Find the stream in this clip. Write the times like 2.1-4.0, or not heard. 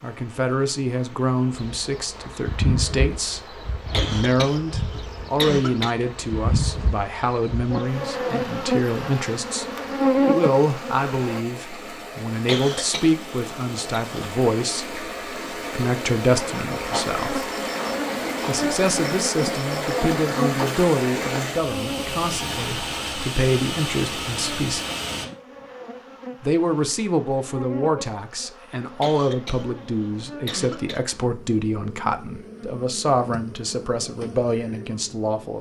0.0-25.2.